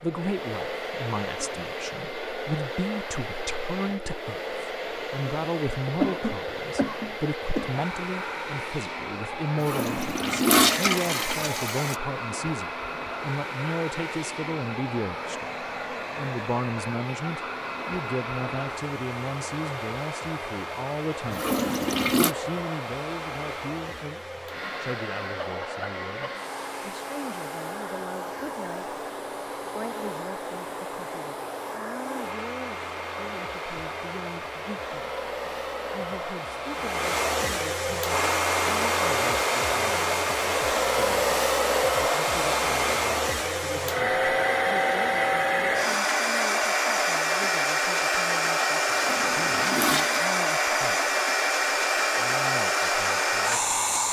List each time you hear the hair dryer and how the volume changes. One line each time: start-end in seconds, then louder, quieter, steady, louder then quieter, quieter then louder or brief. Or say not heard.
0.0-54.0 louder.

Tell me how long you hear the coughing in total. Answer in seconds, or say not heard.
2 s.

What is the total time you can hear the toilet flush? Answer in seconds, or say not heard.
5 s.